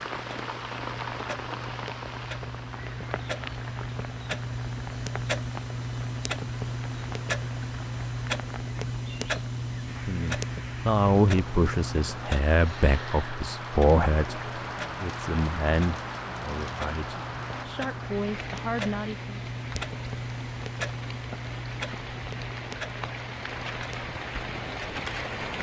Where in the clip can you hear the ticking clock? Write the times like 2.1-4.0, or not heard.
0.0-25.5.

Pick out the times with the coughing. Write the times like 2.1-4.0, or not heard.
not heard.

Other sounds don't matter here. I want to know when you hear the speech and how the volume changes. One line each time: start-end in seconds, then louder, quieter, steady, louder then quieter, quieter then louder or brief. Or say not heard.
9.9-19.4 quieter.